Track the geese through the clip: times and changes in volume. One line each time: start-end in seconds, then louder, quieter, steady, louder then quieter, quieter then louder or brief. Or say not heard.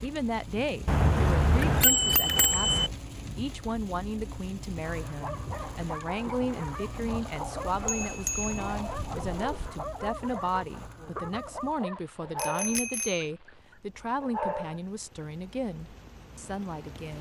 not heard.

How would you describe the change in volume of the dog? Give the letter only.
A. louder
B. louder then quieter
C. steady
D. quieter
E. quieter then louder
C.